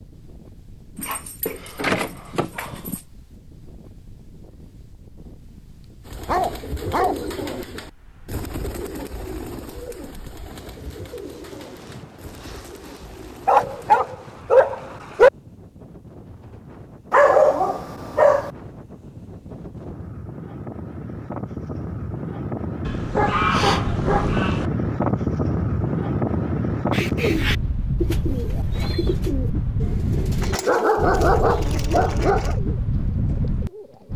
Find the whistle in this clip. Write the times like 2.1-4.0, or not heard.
not heard.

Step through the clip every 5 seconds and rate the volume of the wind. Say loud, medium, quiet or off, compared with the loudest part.
quiet, quiet, quiet, quiet, loud, loud, loud.